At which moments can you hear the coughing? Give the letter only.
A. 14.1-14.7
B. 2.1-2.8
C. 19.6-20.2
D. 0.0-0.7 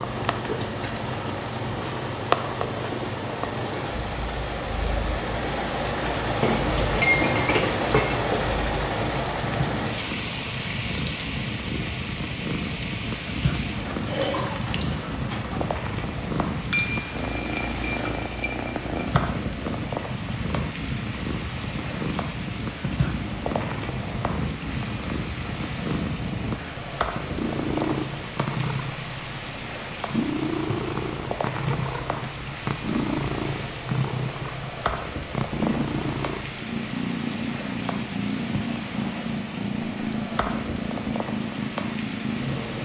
A.